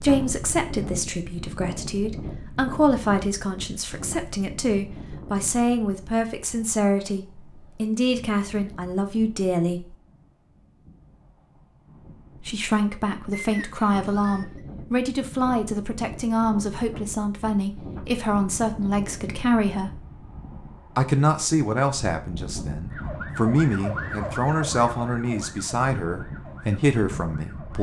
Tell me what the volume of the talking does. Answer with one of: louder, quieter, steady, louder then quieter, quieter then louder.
steady.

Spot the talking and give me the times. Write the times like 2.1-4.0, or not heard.
0.0-9.9, 12.4-20.1, 20.9-27.7.